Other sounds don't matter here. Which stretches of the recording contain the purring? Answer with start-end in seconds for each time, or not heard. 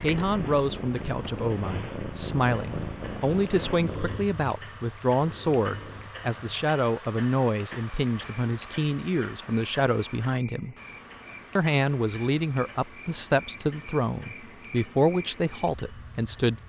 0.0-6.7.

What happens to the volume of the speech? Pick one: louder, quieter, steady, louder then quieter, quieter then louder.
steady.